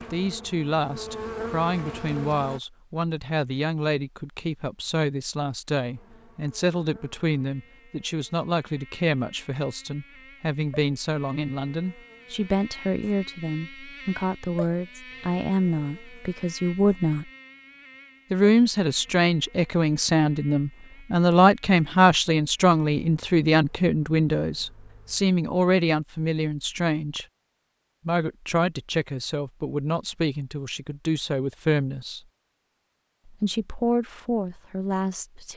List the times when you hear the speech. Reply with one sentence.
You can hear the speech from 0.1 to 17.3 s, from 18.3 to 27.2 s, from 28.1 to 32.2 s and from 33.2 to 35.5 s.